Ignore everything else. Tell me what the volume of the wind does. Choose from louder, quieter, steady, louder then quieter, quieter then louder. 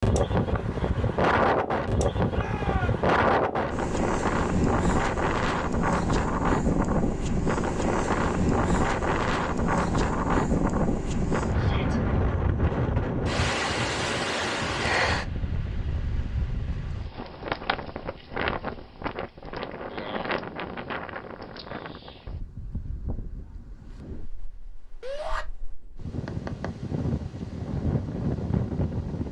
quieter.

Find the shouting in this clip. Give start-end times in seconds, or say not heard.
2.3-3.0, 11.6-12.0, 25.0-25.4.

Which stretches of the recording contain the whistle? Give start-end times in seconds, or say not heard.
not heard.